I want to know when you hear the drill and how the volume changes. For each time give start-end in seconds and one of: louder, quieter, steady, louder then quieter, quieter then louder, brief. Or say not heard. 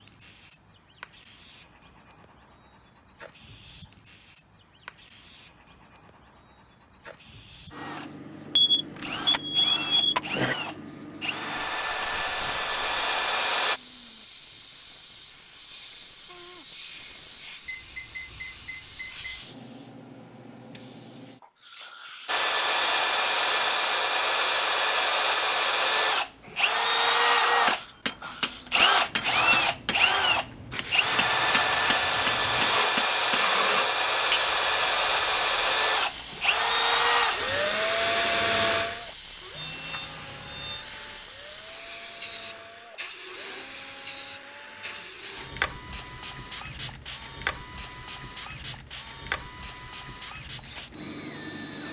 7.7-13.8 louder
22.2-51.8 quieter.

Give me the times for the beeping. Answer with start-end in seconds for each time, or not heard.
8.6-10.6, 17.6-19.4, 39.5-40.9.